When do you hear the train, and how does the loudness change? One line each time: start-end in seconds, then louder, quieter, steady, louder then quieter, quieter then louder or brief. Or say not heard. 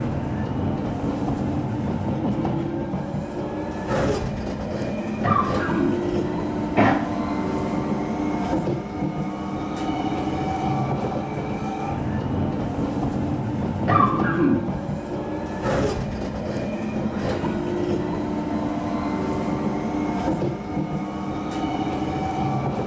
0.0-22.8 steady.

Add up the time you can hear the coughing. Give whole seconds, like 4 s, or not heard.
3 s.